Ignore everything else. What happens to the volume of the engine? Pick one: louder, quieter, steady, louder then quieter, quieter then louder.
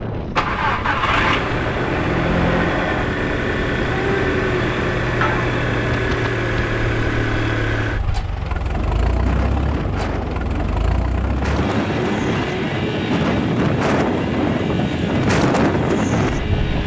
quieter.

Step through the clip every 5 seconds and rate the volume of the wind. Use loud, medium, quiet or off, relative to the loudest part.
medium, medium, loud, loud.